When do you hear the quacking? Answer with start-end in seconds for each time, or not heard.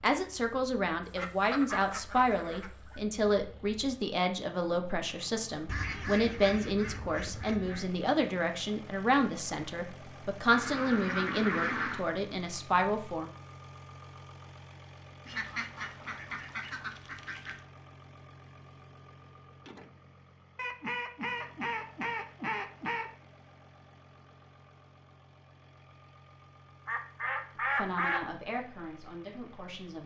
1.1-3.0, 5.7-7.9, 10.5-12.1, 15.2-17.6, 20.6-23.1, 26.9-28.3.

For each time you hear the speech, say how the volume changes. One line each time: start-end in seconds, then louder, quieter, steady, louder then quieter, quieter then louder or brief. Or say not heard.
0.0-13.3 steady
27.8-30.0 brief.